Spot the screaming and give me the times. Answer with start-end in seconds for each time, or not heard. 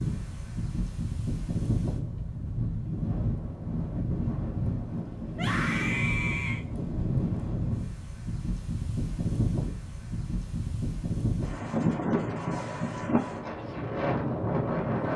5.3-6.7.